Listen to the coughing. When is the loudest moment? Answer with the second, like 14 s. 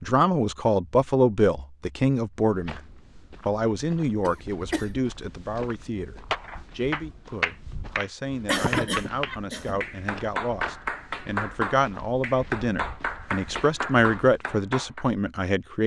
9 s.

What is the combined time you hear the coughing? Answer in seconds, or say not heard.
2 s.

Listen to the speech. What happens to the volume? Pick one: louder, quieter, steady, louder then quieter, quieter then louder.
quieter then louder.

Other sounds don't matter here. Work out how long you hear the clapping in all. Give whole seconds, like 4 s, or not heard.
9 s.